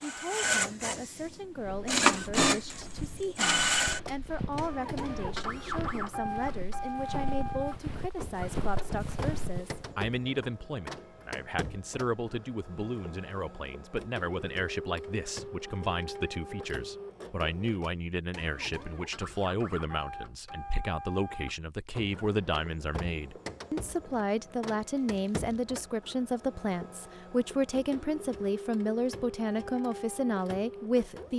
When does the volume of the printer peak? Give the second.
2 s.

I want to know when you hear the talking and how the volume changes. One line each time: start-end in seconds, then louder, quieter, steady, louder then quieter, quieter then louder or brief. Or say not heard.
0.0-31.3 louder.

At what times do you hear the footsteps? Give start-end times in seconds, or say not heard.
1.4-9.9.